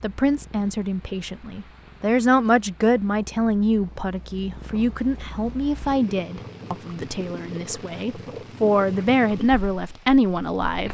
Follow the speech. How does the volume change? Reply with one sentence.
The loudness of the speech goes down, then up.